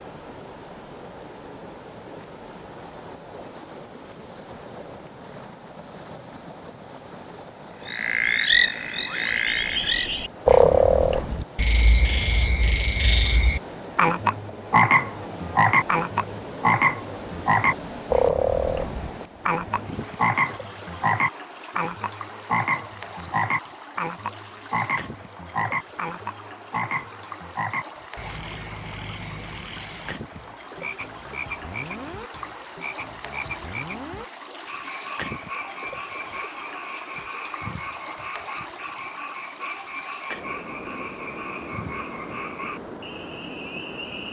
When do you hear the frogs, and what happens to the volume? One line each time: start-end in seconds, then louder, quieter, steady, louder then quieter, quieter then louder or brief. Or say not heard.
7.8-44.2 quieter.